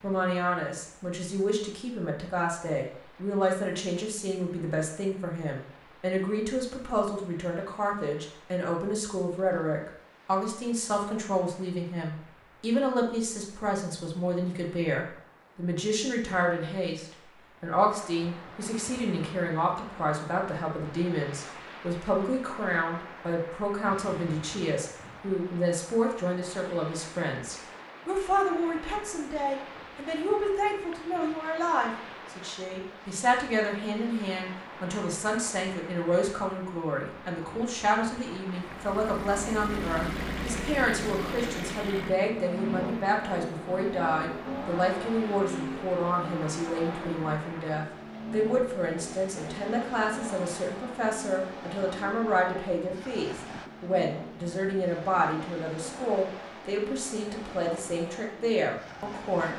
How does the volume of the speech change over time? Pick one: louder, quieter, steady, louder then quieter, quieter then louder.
steady.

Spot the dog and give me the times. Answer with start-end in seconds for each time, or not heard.
not heard.